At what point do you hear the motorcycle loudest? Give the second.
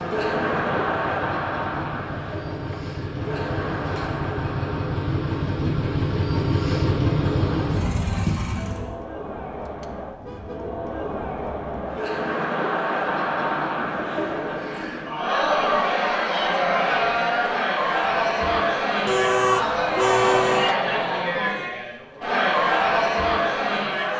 7 s.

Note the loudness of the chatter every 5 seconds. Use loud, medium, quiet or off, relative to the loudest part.
medium, quiet, medium, loud, loud.